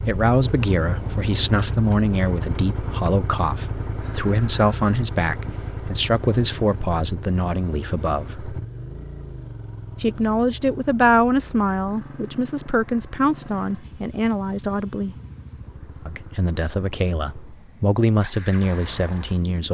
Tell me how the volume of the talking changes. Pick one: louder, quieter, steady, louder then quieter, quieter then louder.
steady.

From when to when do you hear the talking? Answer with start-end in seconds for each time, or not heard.
0.0-8.6, 10.0-15.2, 16.1-19.6.